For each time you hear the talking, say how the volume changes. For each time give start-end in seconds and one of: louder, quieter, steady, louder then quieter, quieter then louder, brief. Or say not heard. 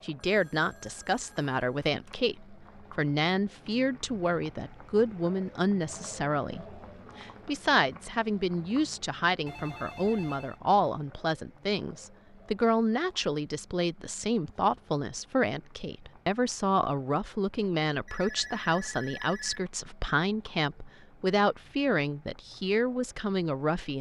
0.0-23.9 steady.